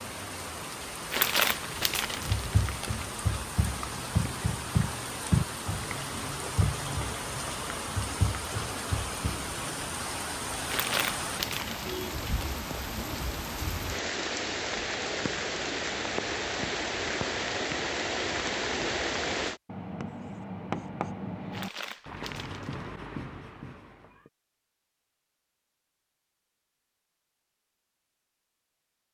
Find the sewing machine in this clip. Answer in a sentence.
The sewing machine can't be heard in this clip.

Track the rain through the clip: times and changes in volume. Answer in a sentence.
You can hear the rain from 0.0 to 19.6 s, getting louder.